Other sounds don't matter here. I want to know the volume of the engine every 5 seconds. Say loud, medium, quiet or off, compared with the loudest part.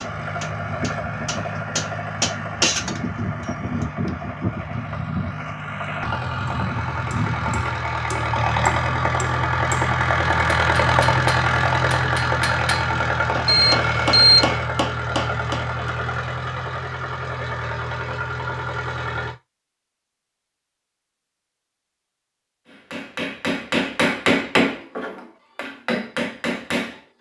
medium, loud, loud, medium, off, off.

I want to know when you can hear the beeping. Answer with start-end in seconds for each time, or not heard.
13.4-14.6.